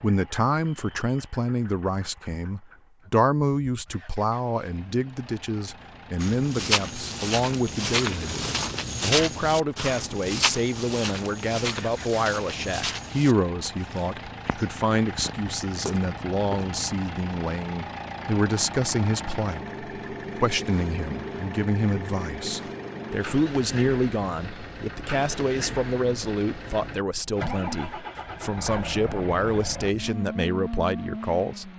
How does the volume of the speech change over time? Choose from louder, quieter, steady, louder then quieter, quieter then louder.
steady.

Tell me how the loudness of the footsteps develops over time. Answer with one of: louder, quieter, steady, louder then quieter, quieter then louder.
quieter.